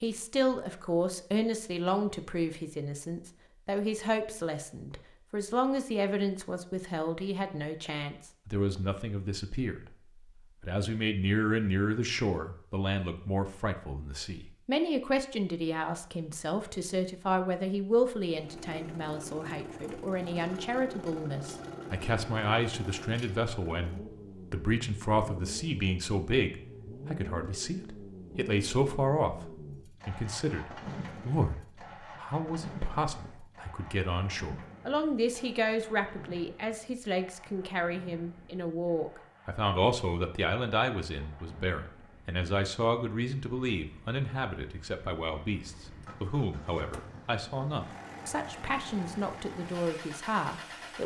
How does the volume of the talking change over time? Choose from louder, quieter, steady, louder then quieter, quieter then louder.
steady.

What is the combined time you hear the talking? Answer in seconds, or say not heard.
50 s.